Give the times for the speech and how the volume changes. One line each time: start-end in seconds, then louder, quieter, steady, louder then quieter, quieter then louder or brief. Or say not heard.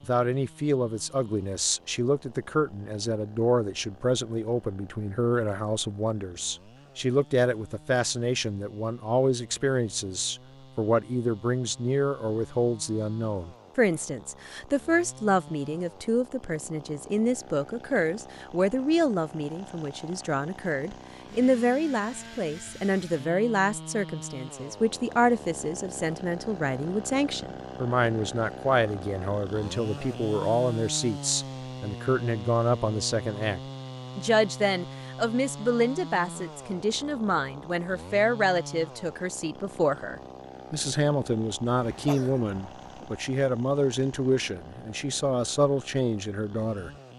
0.0-46.9 steady.